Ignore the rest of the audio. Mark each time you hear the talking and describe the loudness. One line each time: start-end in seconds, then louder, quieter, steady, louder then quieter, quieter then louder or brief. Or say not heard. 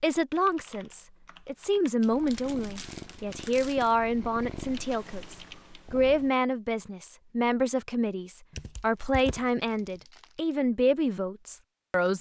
0.0-12.1 steady.